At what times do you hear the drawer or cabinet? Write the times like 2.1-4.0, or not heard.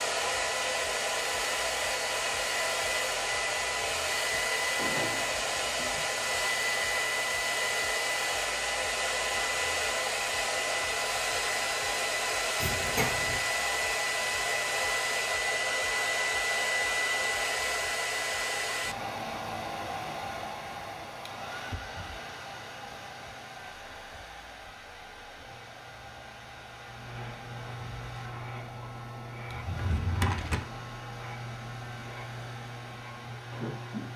4.8-5.9, 12.6-13.4, 29.5-30.6.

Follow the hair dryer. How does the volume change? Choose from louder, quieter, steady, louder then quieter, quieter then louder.
quieter.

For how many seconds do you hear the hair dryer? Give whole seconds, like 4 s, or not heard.
34 s.